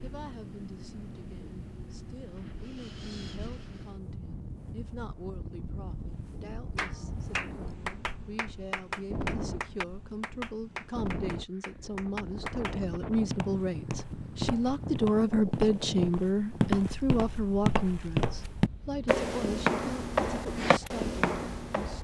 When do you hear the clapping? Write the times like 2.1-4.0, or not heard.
6.8-12.8.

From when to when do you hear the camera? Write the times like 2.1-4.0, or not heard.
not heard.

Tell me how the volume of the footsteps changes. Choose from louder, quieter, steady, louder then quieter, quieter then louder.
louder.